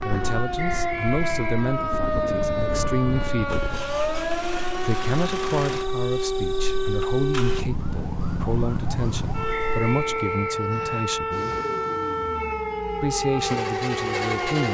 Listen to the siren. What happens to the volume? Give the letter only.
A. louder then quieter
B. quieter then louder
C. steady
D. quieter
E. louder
C.